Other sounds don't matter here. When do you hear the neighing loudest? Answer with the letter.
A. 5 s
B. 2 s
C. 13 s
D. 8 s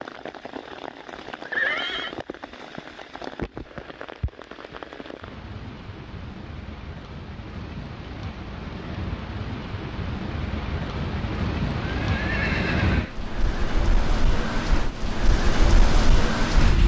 B.